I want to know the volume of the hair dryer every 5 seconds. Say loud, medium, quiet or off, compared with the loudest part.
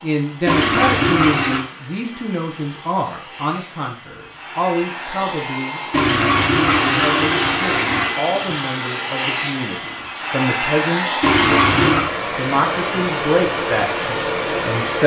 quiet, loud, loud.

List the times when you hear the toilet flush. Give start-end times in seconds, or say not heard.
0.5-1.6, 5.9-8.2, 11.2-12.1.